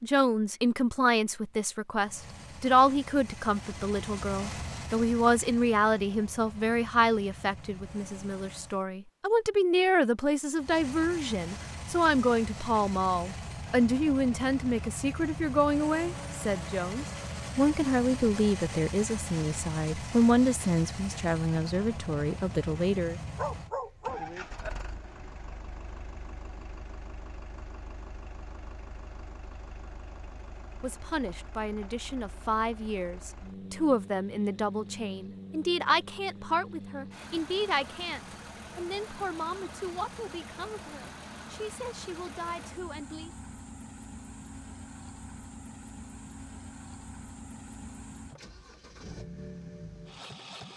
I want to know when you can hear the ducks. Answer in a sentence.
You can't hear the ducks here.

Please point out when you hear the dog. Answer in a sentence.
You can hear the dog from 23.4 to 24.7 s.